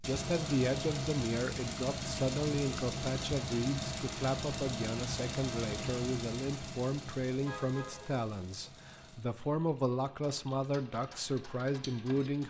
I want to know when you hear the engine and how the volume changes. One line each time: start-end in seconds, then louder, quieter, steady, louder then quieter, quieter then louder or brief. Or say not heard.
0.0-12.4 quieter.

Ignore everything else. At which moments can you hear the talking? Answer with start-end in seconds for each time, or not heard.
0.0-12.4.